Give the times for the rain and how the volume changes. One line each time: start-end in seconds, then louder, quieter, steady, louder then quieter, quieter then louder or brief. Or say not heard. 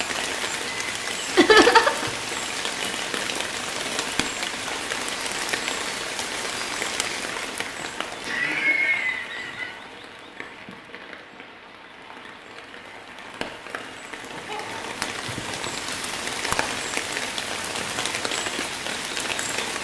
0.0-19.8 quieter then louder.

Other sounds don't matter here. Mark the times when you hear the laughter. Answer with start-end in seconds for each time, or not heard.
1.4-2.0, 8.2-9.8, 14.2-14.9.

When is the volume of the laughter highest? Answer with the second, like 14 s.
2 s.